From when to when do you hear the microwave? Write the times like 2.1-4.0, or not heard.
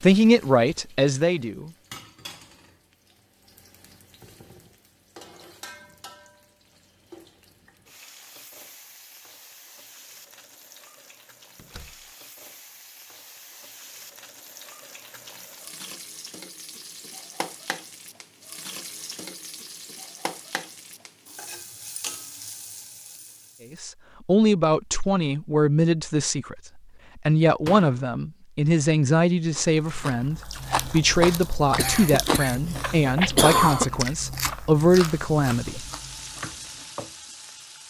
not heard.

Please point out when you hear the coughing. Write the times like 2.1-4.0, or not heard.
31.8-33.9.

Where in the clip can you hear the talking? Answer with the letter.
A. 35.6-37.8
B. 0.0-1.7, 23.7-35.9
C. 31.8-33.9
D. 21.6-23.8
B.